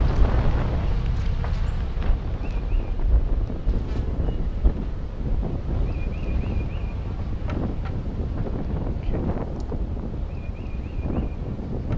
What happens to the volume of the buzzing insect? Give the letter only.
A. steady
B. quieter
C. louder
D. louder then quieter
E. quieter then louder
B.